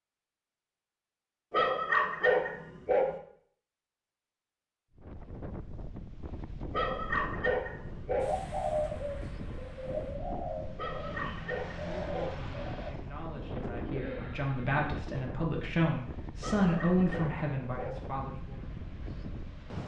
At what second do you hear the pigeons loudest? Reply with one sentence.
The loudest moment of the pigeons is at 9 seconds.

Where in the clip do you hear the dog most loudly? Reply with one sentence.
The loudest moment of the dog is at 2 seconds.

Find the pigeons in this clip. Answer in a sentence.
The pigeons can be heard from 8.2 to 15.2 s.